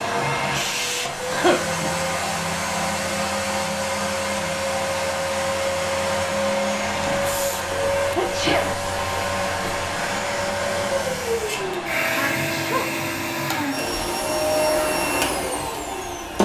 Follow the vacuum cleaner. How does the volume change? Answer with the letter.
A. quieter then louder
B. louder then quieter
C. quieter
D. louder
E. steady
E.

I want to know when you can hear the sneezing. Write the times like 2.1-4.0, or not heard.
1.2-1.9, 8.2-8.7, 12.2-12.9.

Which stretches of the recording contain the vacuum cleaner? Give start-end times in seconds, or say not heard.
0.0-16.4.